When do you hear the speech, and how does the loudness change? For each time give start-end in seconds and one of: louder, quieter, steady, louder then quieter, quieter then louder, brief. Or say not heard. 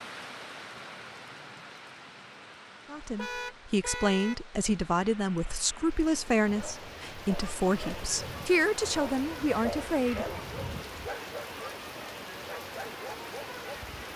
2.9-10.2 steady.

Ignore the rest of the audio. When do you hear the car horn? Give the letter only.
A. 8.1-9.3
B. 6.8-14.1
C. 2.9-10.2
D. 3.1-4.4
D.